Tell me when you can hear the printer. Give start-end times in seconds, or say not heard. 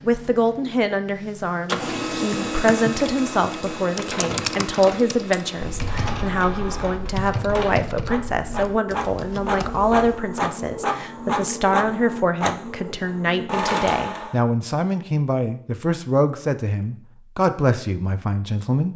0.0-14.4.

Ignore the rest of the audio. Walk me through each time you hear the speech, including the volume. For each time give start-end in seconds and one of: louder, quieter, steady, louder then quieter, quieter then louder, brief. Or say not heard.
0.0-18.9 steady.